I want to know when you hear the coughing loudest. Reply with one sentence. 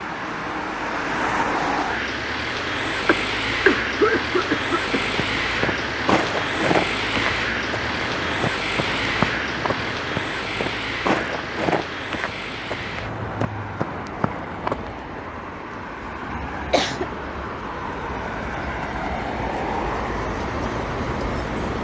The loudest moment of the coughing is at 4 seconds.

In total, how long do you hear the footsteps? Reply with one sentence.
The footsteps can be heard for 10 seconds in total.